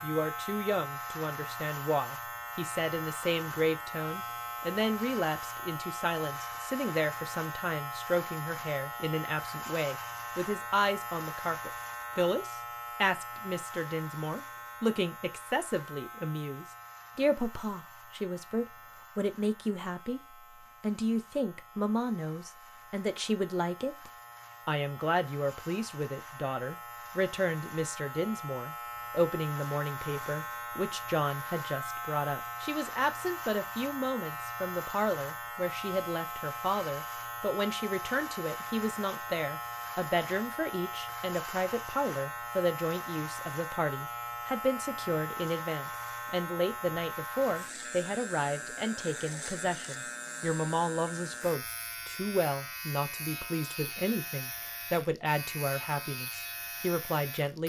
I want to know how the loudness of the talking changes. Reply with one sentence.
The loudness of the talking stays about the same.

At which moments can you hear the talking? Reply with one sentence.
The talking can be heard from 0.0 to 57.6 s.